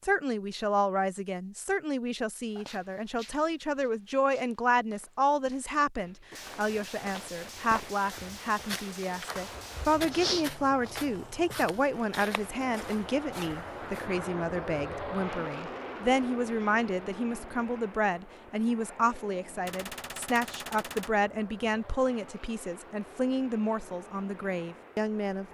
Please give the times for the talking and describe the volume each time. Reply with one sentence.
The talking can be heard from 0.0 to 25.4 s, at a steady volume.